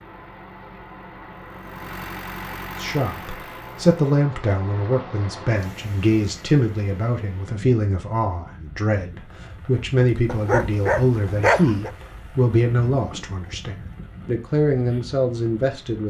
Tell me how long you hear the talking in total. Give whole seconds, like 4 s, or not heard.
13 s.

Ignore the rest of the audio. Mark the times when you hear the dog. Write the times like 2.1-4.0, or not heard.
10.2-11.9.